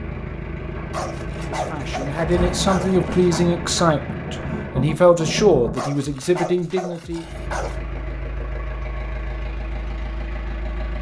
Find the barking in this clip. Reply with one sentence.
You can hear the barking from 0.9 to 3.5 s and from 5.8 to 7.8 s.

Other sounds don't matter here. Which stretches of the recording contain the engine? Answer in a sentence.
You can hear the engine from 0.0 to 4.9 s and from 7.2 to 10.9 s.